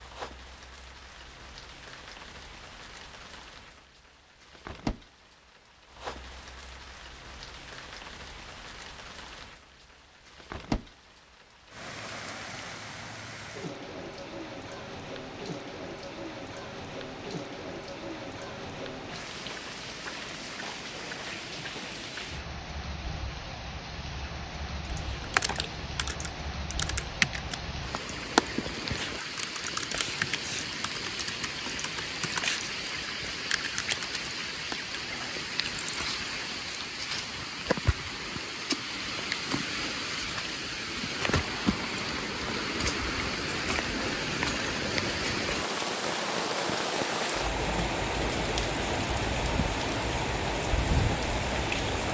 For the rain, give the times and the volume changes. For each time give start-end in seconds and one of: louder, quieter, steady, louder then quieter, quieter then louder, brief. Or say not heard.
0.0-52.1 louder.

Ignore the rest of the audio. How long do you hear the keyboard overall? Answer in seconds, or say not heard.
10 s.